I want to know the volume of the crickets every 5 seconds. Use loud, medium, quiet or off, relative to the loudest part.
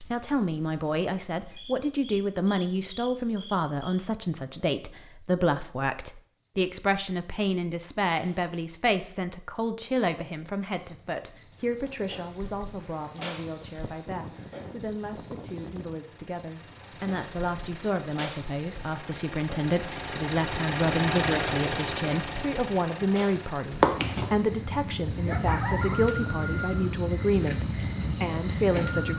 quiet, quiet, loud, loud, loud, loud.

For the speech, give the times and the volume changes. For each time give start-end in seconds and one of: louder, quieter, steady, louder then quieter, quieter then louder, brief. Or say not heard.
0.0-29.1 quieter then louder.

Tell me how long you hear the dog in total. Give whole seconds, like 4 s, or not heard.
not heard.